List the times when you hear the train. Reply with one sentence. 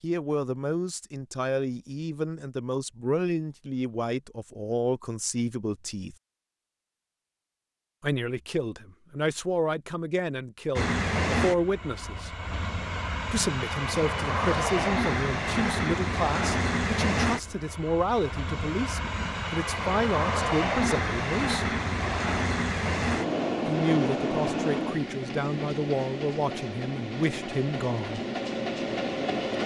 You can hear the train from 10.8 to 29.6 s.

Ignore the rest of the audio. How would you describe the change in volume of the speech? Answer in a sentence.
The volume of the speech stays about the same.